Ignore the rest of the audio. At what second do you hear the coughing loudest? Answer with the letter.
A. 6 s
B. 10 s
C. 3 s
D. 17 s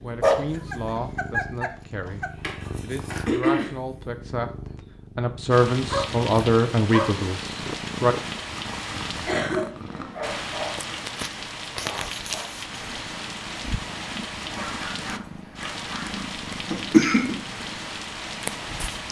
D.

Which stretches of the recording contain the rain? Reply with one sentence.
You can hear the rain from 5.5 to 19.0 s.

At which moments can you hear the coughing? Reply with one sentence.
The coughing can be heard from 2.0 to 3.8 s, from 9.2 to 10.2 s and from 16.7 to 17.4 s.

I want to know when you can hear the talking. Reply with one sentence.
The talking can be heard from 0.0 to 2.2 s and from 2.8 to 8.2 s.